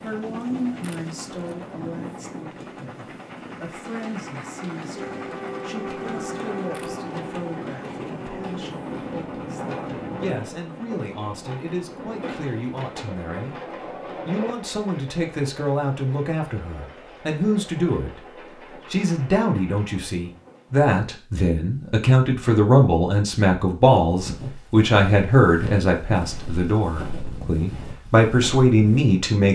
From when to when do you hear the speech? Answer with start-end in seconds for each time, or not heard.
0.0-13.6, 14.2-18.2, 18.9-29.4.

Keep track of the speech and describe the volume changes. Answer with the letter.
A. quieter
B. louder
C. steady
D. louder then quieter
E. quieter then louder
B.